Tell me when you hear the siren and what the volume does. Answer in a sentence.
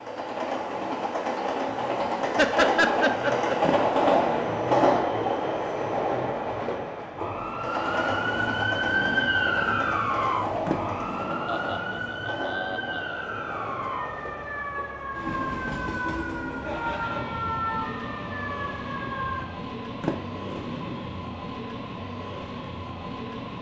You can hear the siren from 7.2 to 19.4 s, getting quieter.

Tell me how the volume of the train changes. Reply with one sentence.
The loudness of the train goes down.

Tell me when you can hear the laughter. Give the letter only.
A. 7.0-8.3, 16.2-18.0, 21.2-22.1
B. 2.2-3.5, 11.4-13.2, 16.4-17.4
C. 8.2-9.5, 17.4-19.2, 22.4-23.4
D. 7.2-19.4
B.